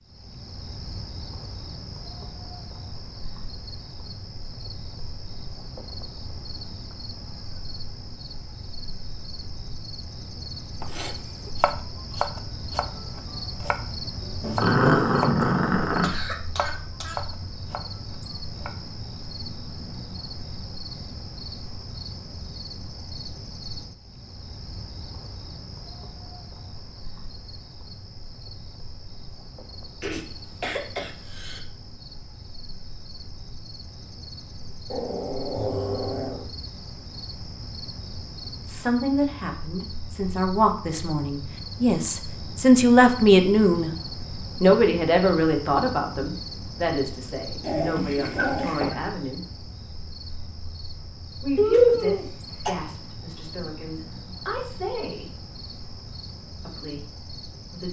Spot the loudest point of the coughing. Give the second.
52 s.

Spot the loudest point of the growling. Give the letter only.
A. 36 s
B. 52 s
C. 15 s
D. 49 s
C.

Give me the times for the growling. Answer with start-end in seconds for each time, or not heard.
14.4-16.1, 34.9-36.5, 47.6-49.0.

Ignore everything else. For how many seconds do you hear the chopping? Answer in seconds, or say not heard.
8 s.